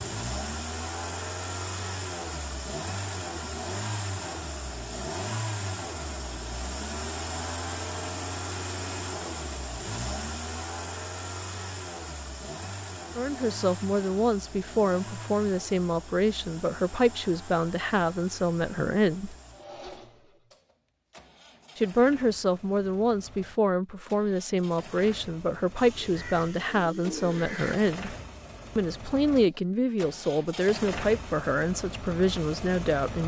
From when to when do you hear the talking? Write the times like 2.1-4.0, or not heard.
13.2-19.4, 21.8-28.1, 28.8-33.2.